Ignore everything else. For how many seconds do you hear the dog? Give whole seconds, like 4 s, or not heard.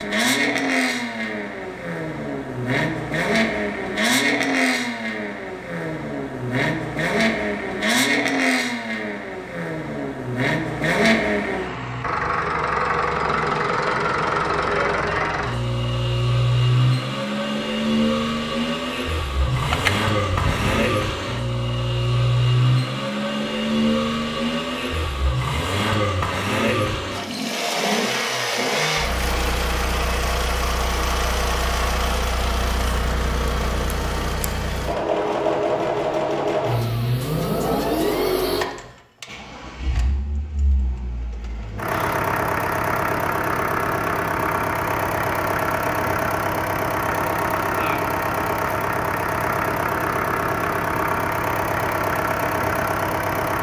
not heard.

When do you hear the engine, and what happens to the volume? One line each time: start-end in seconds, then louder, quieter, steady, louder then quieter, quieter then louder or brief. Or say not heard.
0.0-53.5 steady.